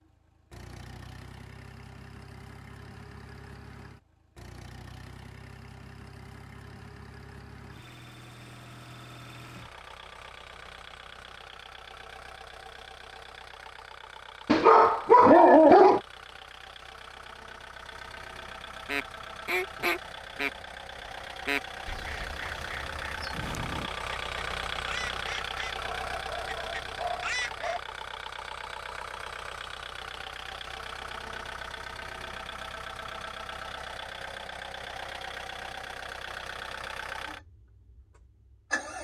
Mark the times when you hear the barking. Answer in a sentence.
The barking can be heard from 14.4 to 16.0 s and from 25.8 to 27.8 s.